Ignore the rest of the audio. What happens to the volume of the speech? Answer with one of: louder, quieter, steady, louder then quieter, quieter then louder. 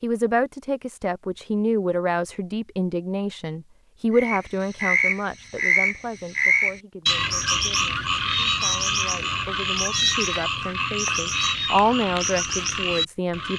quieter then louder.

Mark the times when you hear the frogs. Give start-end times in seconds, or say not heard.
4.1-13.5.